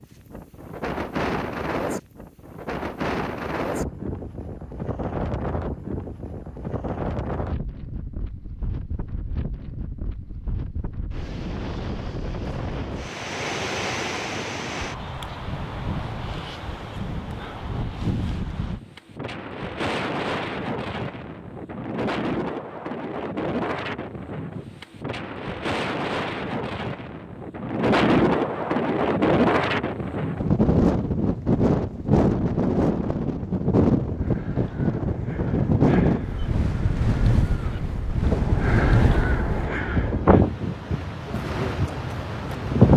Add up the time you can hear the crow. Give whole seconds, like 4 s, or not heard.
6 s.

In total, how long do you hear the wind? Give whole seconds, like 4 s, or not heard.
43 s.